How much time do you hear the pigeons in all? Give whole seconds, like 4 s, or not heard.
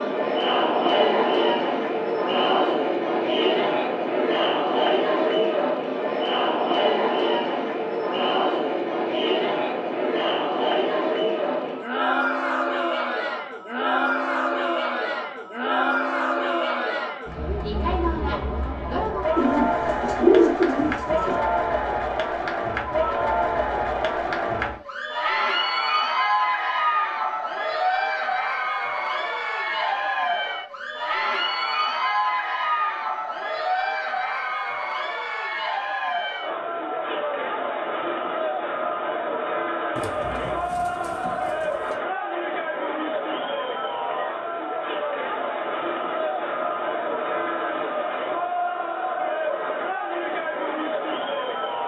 4 s.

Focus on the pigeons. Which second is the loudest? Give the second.
20 s.